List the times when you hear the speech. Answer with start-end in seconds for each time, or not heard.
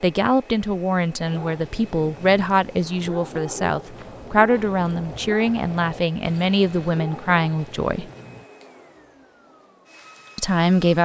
0.0-8.1, 10.3-11.0.